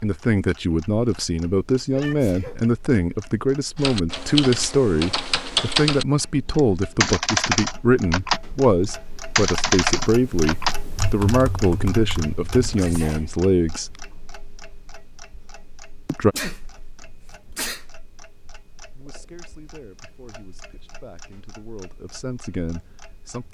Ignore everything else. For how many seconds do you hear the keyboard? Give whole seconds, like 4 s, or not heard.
9 s.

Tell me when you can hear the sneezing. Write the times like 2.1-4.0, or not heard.
1.9-2.6, 12.8-13.3, 16.3-17.9.